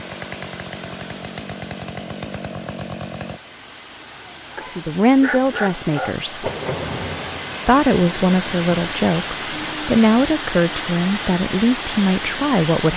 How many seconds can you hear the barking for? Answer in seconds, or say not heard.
2 s.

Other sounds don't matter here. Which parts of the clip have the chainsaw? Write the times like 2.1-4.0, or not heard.
0.0-3.4.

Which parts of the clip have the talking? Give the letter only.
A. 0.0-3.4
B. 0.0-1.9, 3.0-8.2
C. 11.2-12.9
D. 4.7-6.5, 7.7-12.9
D.